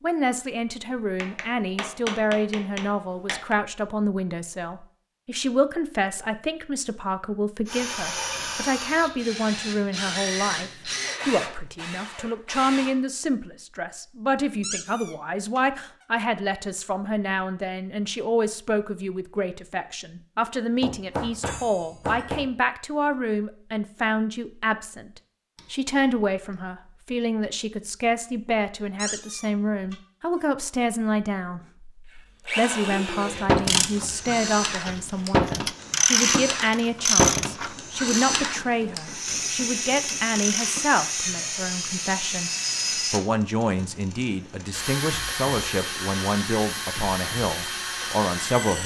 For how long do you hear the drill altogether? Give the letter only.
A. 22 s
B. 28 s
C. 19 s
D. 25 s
A.